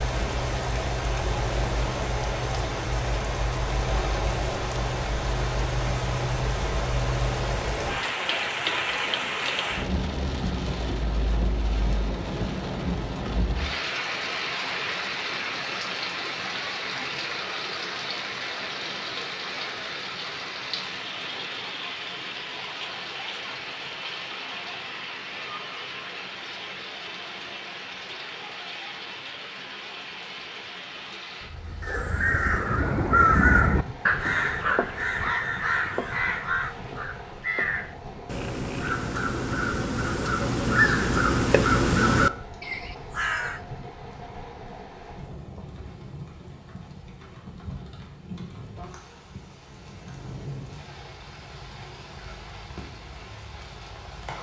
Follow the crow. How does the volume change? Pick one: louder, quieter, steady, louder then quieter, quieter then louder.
quieter then louder.